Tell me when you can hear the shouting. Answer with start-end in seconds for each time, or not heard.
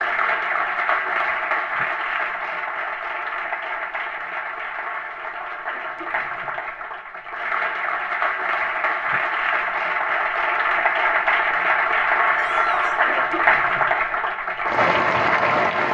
12.3-13.3.